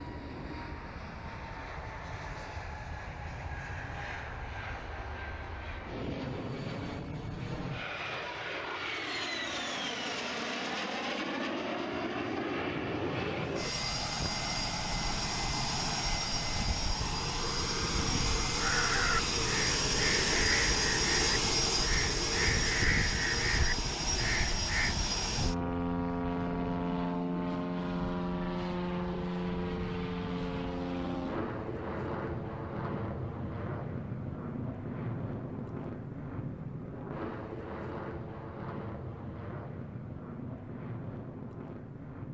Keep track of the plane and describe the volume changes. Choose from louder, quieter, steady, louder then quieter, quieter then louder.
louder then quieter.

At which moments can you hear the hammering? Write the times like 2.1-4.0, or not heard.
not heard.